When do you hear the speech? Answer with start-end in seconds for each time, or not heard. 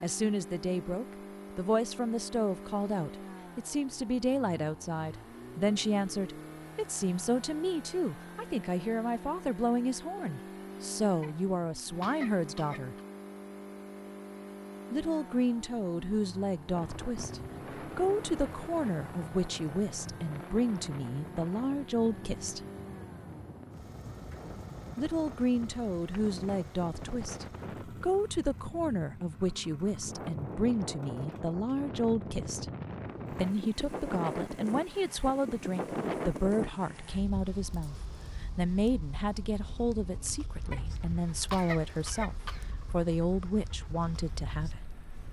0.0-12.9, 14.9-22.6, 24.9-32.6, 33.3-44.9.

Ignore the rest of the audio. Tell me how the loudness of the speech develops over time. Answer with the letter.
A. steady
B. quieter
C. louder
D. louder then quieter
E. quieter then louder
A.